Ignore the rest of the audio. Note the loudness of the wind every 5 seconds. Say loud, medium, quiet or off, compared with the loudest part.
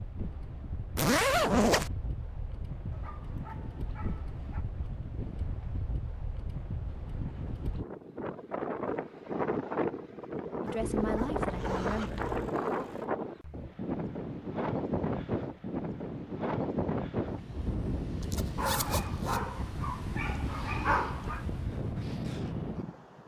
medium, loud, loud, loud, loud.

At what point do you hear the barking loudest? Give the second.
21 s.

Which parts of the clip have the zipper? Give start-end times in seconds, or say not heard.
0.9-1.9, 10.8-12.5, 18.2-19.5.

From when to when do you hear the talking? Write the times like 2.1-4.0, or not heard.
10.6-12.3.